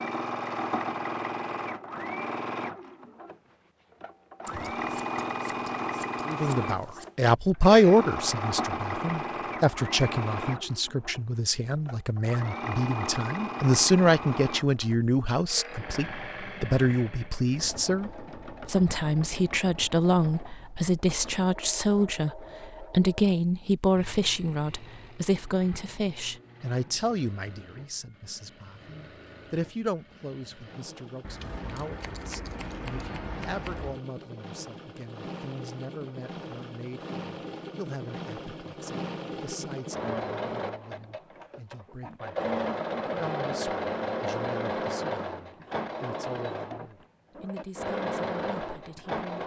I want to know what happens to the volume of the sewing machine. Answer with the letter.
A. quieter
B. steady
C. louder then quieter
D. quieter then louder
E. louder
D.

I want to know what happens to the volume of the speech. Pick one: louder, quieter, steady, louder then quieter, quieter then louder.
quieter.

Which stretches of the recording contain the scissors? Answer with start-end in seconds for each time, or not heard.
4.5-7.1, 31.2-34.0.